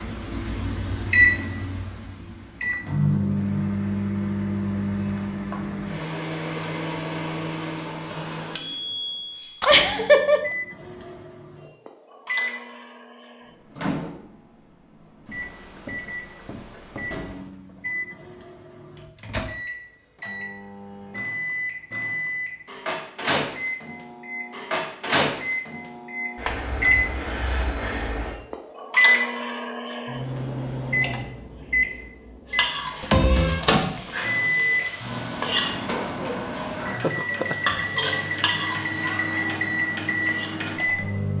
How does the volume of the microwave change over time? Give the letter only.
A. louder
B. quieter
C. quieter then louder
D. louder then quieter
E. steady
C.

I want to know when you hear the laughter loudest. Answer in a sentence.
The loudest moment of the laughter is at 10 seconds.